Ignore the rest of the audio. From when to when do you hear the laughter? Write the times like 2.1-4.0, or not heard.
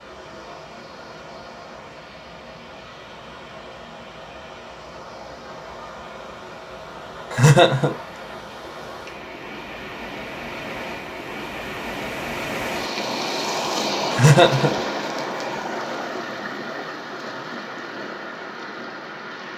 7.3-8.0, 14.1-14.8.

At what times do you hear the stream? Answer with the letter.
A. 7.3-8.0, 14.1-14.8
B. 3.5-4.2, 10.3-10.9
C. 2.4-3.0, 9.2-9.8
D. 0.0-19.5
D.